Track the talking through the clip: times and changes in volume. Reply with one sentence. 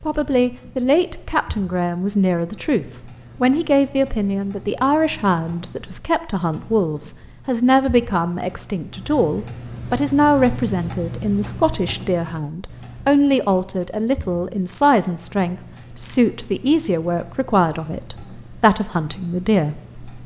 The talking can be heard from 0.0 to 20.0 s, at a steady volume.